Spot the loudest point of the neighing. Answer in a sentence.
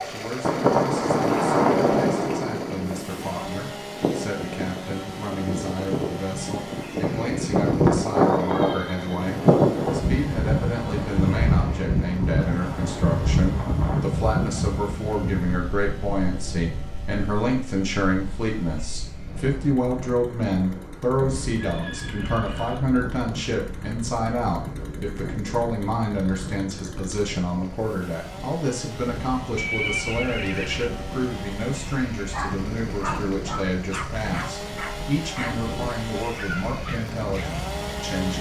The loudest moment of the neighing is at 30 seconds.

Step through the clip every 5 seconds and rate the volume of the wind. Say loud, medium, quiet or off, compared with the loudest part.
loud, loud, loud, quiet, quiet, quiet, quiet, quiet.